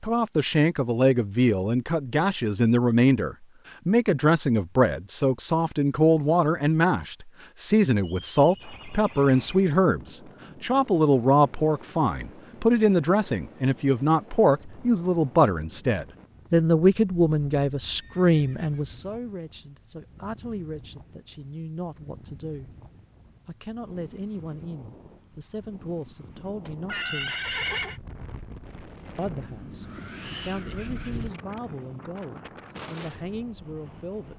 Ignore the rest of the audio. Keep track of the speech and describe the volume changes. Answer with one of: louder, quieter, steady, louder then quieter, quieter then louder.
quieter.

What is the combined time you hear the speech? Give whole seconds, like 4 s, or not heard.
32 s.